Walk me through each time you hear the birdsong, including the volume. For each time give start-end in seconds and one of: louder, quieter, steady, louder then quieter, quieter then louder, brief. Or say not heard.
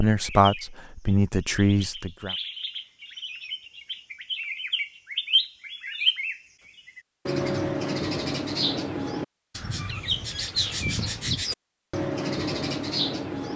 0.1-13.5 louder.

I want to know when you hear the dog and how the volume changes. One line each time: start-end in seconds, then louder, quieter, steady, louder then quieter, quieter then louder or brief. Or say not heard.
not heard.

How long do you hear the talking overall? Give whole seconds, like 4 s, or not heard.
2 s.